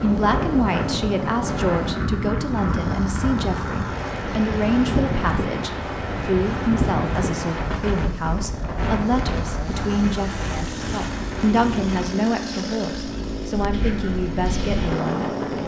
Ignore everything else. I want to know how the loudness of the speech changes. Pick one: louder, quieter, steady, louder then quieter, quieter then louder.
steady.